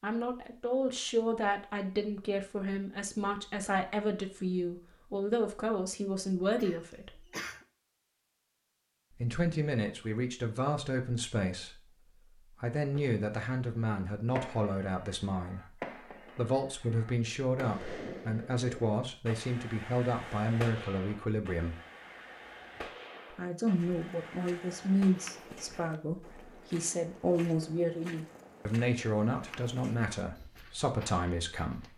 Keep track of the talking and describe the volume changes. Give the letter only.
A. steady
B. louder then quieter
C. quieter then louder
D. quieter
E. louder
A.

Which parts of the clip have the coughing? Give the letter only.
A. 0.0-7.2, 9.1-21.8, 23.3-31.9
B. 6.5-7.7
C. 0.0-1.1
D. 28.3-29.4
B.